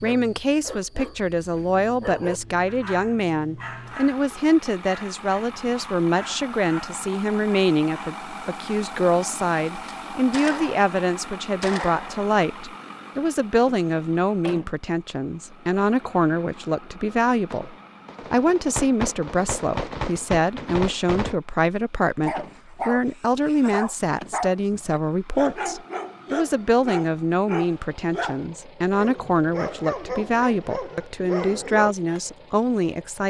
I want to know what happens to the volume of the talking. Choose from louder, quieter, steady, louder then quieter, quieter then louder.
steady.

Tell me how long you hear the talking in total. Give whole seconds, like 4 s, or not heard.
33 s.